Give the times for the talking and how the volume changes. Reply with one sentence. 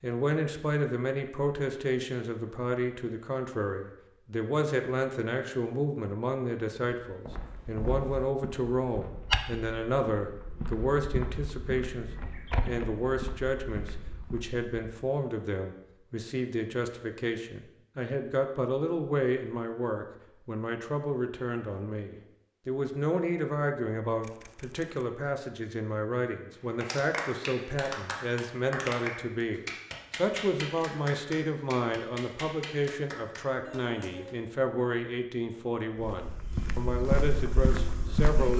You can hear the talking from 0.0 to 38.5 s, at a steady volume.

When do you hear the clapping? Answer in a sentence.
The clapping can be heard from 26.8 to 34.4 s.